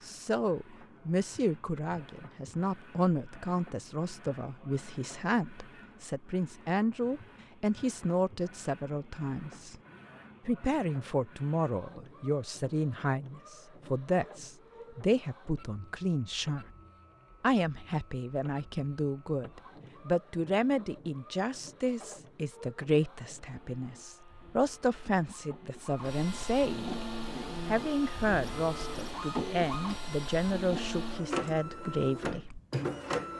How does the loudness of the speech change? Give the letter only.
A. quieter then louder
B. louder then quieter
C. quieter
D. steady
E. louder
D.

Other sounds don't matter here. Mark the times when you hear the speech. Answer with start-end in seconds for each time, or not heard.
0.0-9.8, 10.4-16.6, 17.4-27.1, 27.6-32.6.